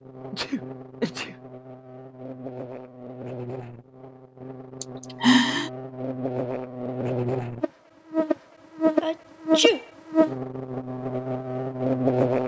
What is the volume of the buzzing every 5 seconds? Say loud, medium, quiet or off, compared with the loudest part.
quiet, loud, loud.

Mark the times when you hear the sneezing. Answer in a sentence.
The sneezing can be heard from 0.3 to 1.4 s, from 4.8 to 5.7 s and from 9.0 to 9.8 s.